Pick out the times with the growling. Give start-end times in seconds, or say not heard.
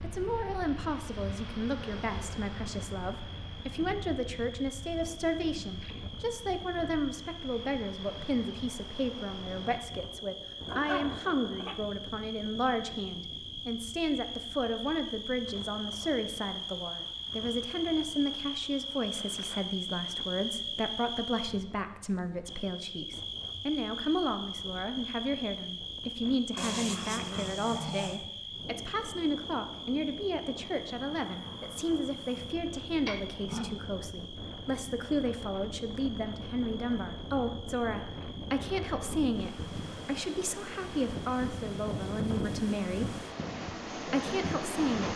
10.7-11.8, 26.6-28.2, 33.0-33.8.